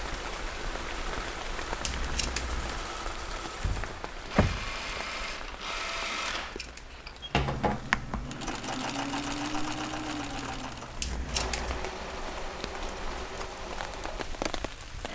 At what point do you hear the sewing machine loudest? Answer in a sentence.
The volume of the sewing machine peaks at 8 seconds.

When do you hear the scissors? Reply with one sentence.
You can hear the scissors from 1.8 to 2.8 s, from 6.2 to 7.8 s and from 10.9 to 11.9 s.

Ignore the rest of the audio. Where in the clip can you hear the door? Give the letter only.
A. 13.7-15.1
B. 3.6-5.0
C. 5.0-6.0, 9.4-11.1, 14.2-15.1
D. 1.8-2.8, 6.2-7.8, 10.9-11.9
B.